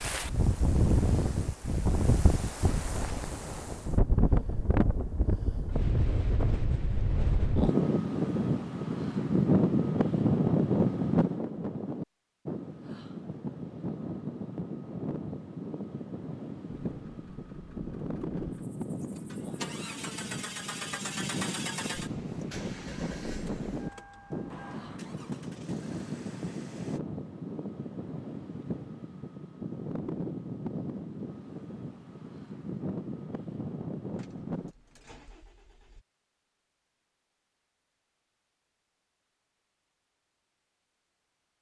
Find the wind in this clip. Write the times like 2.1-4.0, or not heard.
0.0-34.8.